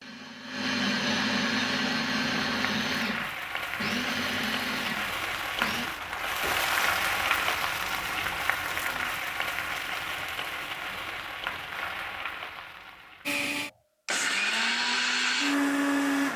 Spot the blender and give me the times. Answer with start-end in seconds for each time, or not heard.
0.0-5.9, 13.2-16.3.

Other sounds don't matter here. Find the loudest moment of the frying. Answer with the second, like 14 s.
7 s.